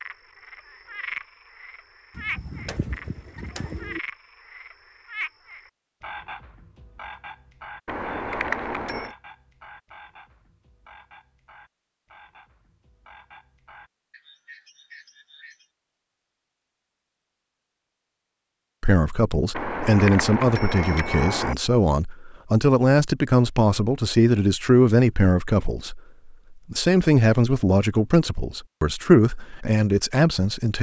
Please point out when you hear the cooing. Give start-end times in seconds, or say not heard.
2.1-4.0.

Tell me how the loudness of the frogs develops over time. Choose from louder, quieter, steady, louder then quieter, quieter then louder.
quieter.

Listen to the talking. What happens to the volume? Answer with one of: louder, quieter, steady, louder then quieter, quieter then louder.
steady.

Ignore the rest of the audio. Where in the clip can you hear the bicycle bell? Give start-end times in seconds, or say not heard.
7.8-9.2, 19.5-21.6.